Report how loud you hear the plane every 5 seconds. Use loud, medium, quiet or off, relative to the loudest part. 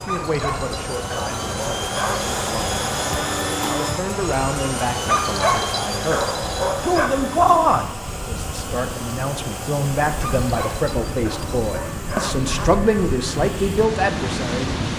loud, loud, medium.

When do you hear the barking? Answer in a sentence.
The barking can be heard from 0.1 to 2.4 s, from 5.0 to 7.1 s and from 10.2 to 12.8 s.